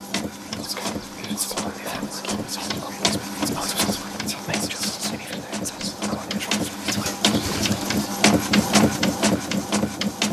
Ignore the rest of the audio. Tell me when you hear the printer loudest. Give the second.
9 s.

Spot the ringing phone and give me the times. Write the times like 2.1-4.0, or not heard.
not heard.